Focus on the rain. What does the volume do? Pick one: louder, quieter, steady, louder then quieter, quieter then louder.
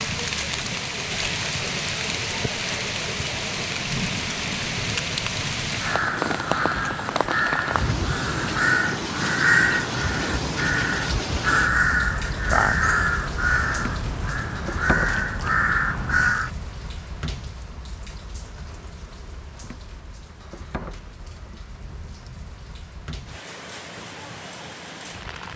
quieter.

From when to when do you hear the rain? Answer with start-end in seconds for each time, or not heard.
0.0-25.5.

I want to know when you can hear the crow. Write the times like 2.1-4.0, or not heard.
5.8-16.5.